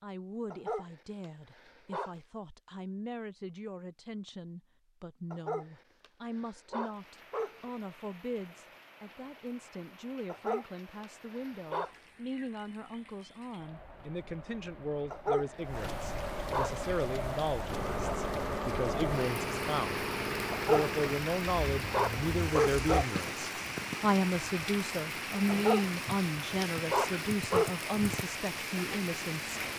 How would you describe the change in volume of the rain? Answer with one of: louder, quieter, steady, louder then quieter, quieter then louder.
louder.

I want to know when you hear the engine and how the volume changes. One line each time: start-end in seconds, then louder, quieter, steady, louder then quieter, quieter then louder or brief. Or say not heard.
17.7-23.1 quieter.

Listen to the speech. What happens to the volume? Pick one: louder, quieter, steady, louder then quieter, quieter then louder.
louder.